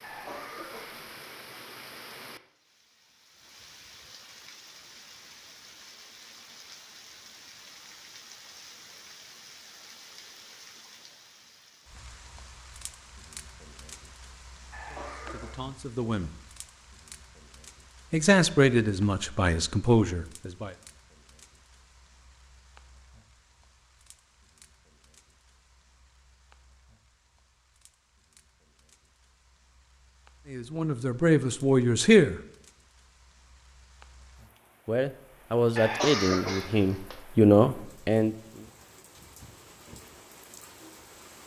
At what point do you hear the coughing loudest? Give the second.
36 s.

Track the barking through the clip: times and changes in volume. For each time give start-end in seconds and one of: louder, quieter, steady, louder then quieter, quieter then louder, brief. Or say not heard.
not heard.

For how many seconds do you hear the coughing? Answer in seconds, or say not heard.
3 s.